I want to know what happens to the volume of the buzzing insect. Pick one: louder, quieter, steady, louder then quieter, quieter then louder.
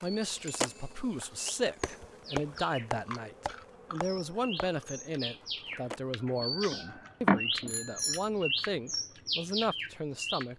quieter.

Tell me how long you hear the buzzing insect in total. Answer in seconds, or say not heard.
6 s.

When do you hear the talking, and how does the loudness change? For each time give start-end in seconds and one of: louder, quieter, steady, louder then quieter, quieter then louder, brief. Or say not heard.
0.0-10.5 steady.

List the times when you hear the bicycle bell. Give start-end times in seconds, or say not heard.
0.5-0.9, 7.7-8.3.